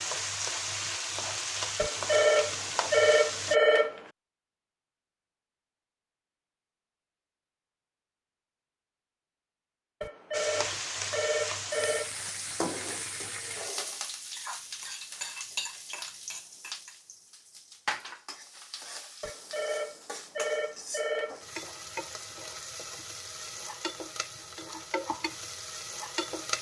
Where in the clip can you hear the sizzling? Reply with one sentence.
The sizzling can be heard from 0.0 to 3.5 s and from 10.3 to 26.5 s.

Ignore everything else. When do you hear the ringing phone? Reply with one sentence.
The ringing phone can be heard from 1.8 to 4.0 s, from 10.0 to 12.1 s and from 19.2 to 21.5 s.